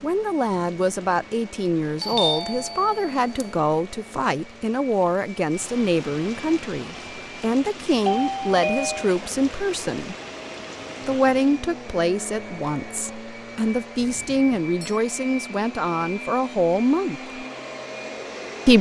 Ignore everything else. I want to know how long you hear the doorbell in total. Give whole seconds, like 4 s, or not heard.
4 s.